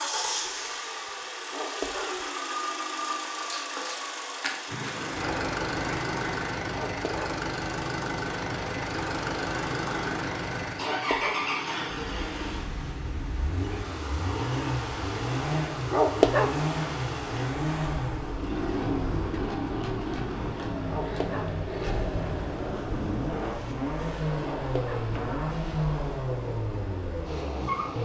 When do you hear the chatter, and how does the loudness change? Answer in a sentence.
You can't hear the chatter here.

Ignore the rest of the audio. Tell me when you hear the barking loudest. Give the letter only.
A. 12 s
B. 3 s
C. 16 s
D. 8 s
C.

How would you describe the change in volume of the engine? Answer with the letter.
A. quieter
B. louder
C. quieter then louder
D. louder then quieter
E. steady
E.